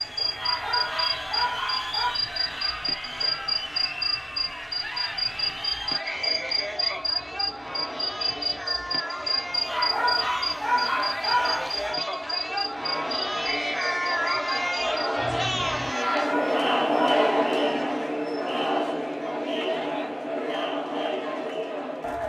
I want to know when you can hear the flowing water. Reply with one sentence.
The flowing water can't be heard in this clip.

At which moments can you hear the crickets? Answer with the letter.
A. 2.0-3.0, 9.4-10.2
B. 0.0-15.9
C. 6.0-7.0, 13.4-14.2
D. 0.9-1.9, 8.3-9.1
B.